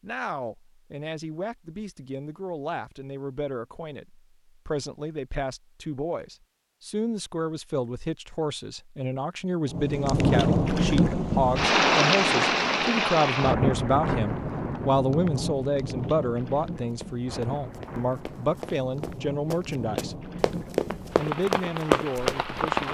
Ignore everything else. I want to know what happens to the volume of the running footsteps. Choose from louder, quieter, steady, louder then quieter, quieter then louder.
louder.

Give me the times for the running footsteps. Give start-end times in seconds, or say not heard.
16.9-22.4.